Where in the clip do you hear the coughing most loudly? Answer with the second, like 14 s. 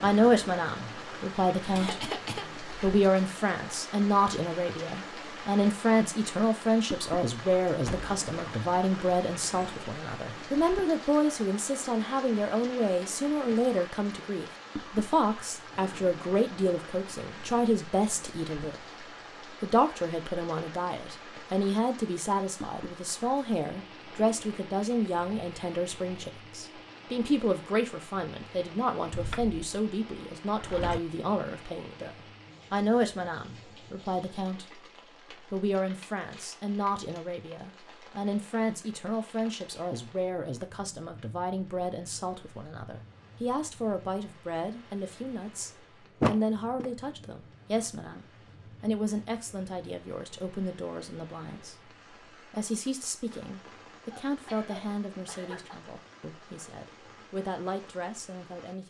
2 s.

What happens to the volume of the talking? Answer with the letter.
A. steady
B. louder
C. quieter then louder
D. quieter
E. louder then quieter
D.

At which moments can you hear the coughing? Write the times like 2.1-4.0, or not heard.
1.8-2.5, 54.0-55.9.